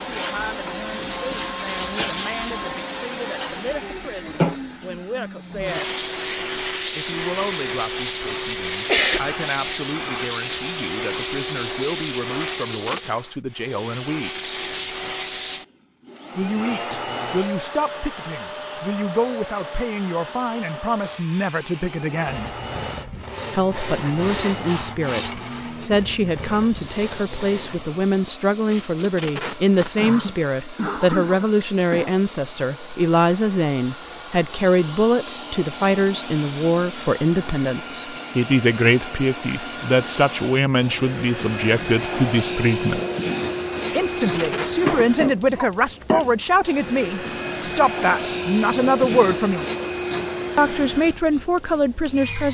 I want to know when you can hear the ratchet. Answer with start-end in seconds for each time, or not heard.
not heard.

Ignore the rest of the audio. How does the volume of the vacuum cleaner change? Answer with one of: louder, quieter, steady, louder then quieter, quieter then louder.
quieter then louder.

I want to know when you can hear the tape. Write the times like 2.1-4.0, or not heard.
12.4-13.1, 28.7-30.1, 44.0-44.7.